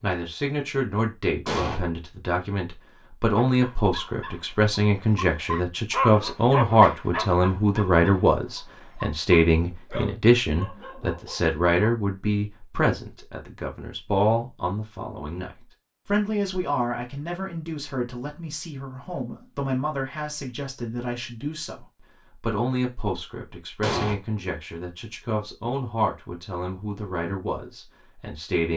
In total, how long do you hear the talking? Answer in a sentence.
The talking can be heard for 29 seconds in total.